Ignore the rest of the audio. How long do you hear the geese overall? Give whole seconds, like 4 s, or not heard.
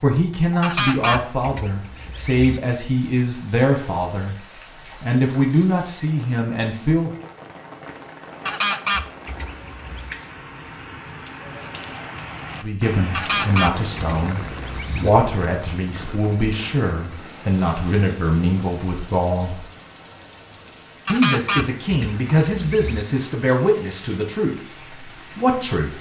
8 s.